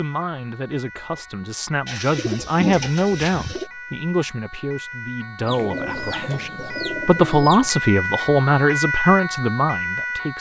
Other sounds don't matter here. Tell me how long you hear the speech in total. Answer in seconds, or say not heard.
10 s.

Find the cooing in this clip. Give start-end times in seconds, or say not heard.
1.9-3.7, 5.5-7.7.